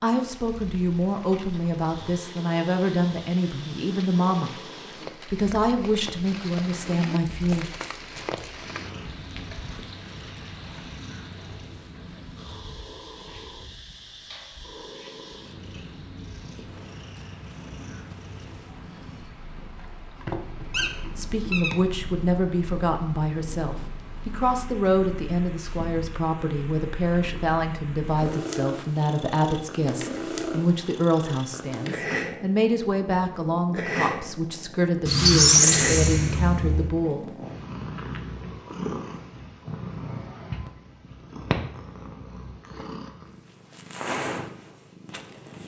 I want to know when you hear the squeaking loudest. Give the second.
36 s.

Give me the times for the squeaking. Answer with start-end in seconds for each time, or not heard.
7.4-8.5, 20.2-21.8, 35.0-36.9.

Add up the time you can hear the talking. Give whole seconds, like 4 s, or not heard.
23 s.